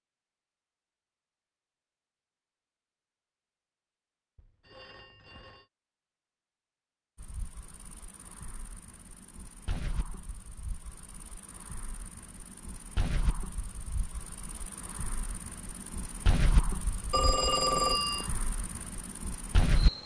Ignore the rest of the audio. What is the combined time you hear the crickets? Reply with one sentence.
You can hear the crickets for 13 seconds altogether.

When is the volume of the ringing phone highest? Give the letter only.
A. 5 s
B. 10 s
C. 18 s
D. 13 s
C.